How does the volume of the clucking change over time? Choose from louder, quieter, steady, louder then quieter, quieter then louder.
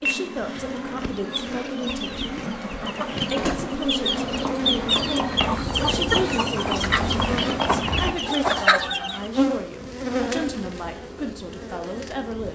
louder.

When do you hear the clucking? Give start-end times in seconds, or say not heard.
1.1-9.3.